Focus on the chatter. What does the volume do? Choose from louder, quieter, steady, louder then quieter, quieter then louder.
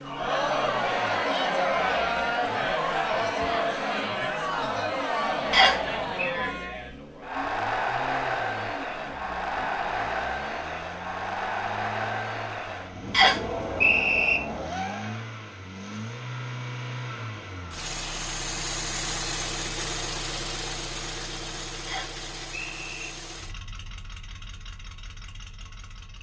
quieter.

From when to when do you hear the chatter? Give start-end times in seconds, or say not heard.
0.0-15.3.